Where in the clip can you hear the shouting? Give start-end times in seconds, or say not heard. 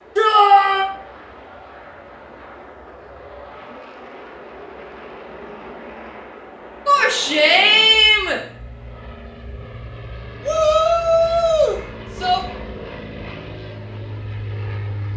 0.1-0.8, 6.8-8.4, 10.4-12.4.